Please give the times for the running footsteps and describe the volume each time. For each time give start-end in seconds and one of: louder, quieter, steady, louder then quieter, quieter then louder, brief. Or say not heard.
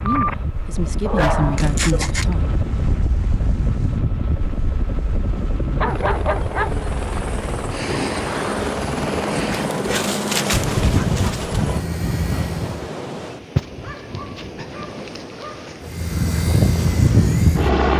not heard.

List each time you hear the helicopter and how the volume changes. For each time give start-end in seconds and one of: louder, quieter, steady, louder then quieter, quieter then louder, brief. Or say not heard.
0.0-12.9 louder
15.8-17.9 brief.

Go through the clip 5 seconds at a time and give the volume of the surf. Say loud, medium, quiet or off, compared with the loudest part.
loud, loud, loud, medium.